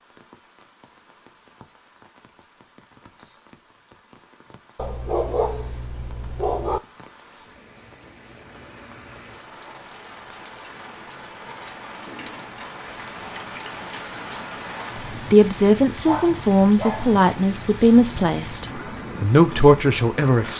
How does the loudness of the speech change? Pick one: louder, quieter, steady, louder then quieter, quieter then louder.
quieter then louder.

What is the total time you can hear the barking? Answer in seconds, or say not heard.
3 s.